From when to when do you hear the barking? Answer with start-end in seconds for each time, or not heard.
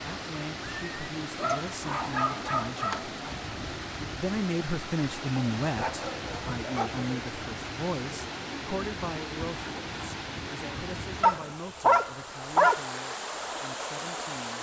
1.4-3.4, 5.3-7.0, 11.2-12.8.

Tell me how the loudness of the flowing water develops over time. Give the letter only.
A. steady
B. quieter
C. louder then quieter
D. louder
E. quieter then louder
A.